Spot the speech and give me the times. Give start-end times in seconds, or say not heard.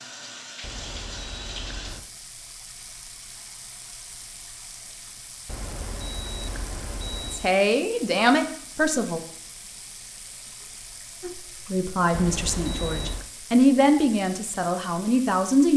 7.3-9.2, 11.2-15.7.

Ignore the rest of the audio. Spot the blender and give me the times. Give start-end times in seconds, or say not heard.
not heard.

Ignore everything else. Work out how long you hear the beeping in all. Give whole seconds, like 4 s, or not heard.
5 s.